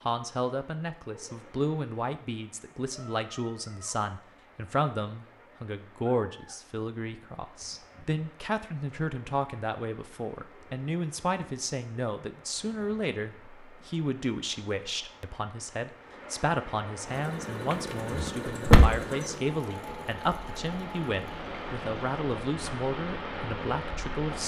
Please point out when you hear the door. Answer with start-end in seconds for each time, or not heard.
17.7-18.9.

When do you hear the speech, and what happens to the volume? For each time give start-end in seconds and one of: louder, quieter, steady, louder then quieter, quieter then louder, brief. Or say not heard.
0.0-24.4 steady.